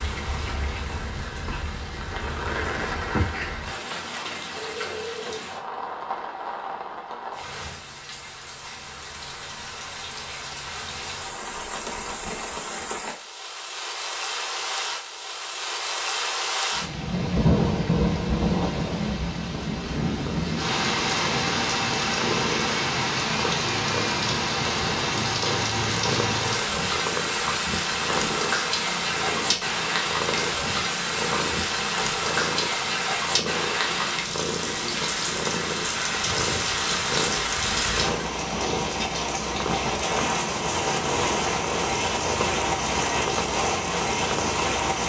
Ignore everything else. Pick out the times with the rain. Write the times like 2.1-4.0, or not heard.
0.0-45.0.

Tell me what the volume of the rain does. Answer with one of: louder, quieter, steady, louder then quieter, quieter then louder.
louder.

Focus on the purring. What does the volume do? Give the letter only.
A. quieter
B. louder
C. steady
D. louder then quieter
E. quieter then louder
C.